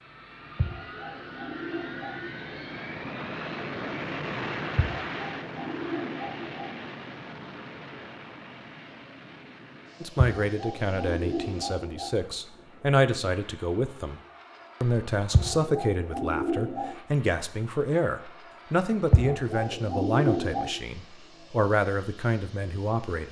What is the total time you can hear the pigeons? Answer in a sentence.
You can hear the pigeons for 9 seconds altogether.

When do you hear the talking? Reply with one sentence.
You can hear the talking from 10.0 to 14.2 s and from 14.8 to 23.2 s.